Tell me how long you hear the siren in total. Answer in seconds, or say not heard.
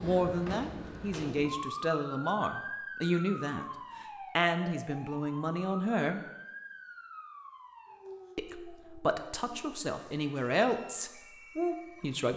12 s.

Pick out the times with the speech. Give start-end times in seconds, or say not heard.
0.0-6.2, 8.3-12.3.